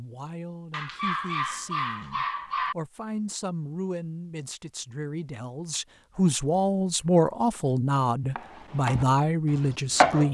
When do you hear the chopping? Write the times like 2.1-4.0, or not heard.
8.3-10.2.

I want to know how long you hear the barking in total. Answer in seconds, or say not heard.
2 s.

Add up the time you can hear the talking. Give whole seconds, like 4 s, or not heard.
10 s.